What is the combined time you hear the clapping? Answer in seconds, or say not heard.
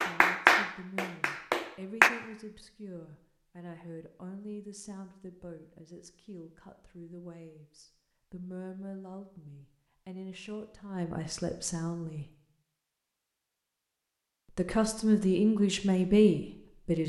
2 s.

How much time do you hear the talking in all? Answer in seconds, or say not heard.
15 s.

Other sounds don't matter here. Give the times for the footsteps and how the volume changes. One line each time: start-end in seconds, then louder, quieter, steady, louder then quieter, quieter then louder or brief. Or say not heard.
not heard.